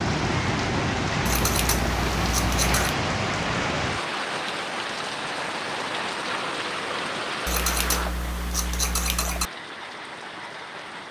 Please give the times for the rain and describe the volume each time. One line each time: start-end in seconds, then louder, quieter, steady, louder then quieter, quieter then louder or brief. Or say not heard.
0.0-11.0 quieter.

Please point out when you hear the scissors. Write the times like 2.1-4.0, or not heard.
1.2-3.0, 7.5-9.5.